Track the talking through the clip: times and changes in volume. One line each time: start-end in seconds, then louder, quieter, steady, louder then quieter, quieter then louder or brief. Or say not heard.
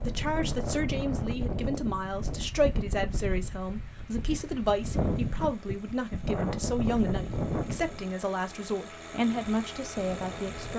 0.1-10.7 steady.